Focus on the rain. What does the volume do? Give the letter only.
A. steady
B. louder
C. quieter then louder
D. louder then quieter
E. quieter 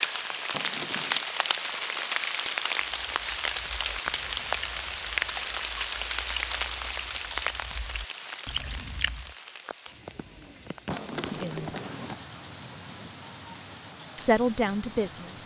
E.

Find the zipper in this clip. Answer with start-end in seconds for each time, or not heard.
0.5-1.2, 10.9-12.2.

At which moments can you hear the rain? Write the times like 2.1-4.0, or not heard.
0.0-15.4.